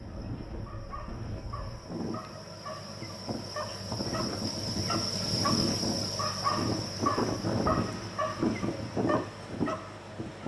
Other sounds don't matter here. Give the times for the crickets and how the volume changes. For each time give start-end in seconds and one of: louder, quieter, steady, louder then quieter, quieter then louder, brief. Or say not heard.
0.0-10.4 louder then quieter.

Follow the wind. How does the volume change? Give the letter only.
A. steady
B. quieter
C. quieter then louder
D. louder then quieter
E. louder
E.